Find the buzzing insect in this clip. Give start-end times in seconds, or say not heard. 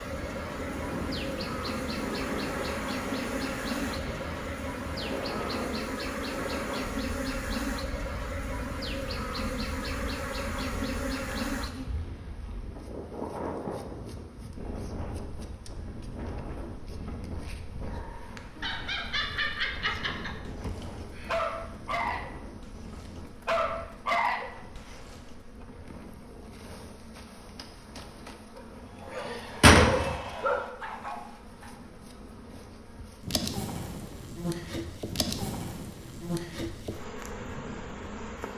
0.0-38.5.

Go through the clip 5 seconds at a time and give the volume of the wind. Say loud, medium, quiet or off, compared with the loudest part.
loud, loud, loud, medium, medium, quiet, quiet, medium.